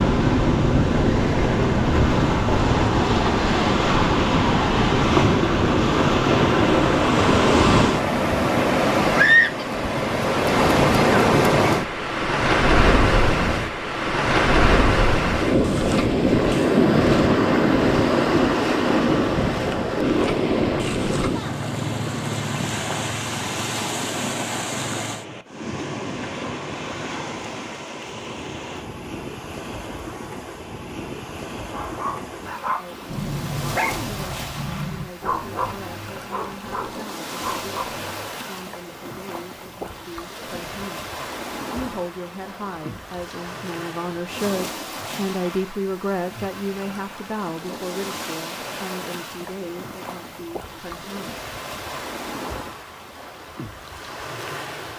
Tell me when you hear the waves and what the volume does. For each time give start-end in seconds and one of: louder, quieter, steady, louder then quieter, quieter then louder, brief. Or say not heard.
0.0-54.9 quieter.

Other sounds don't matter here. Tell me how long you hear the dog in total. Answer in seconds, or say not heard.
7 s.